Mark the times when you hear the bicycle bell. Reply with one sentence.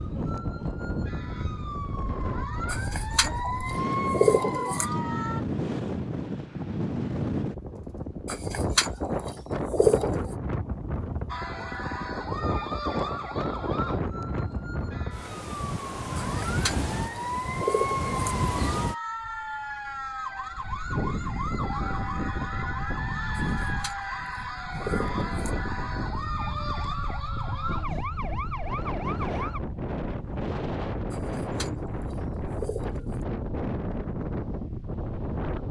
The bicycle bell can't be heard in this clip.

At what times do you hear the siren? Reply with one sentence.
You can hear the siren from 0.0 to 5.5 s and from 11.2 to 29.6 s.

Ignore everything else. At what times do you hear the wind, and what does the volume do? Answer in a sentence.
You can hear the wind from 0.0 to 35.6 s, at a steady volume.